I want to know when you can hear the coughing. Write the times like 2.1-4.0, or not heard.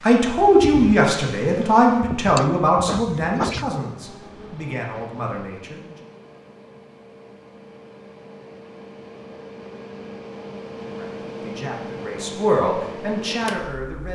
2.4-3.6.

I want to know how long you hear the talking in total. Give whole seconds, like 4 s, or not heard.
9 s.